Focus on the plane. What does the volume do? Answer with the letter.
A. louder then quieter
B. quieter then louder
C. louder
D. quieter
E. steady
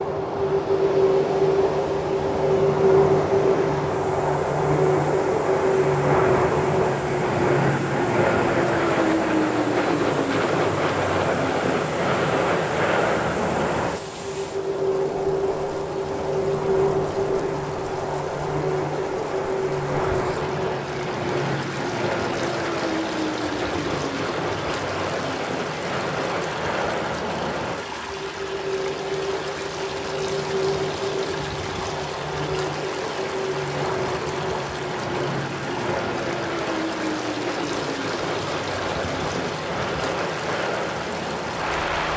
D.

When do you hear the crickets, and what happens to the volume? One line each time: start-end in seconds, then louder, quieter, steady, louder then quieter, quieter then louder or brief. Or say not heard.
not heard.